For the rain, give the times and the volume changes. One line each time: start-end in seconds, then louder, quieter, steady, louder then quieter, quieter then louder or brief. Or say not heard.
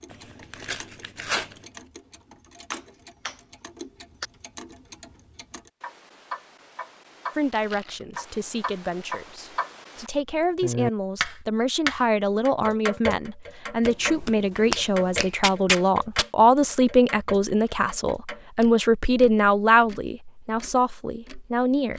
not heard.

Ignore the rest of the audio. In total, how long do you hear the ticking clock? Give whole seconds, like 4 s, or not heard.
22 s.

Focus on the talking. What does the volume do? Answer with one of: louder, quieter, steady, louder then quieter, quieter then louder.
louder.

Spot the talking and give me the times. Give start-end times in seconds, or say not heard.
7.3-21.9.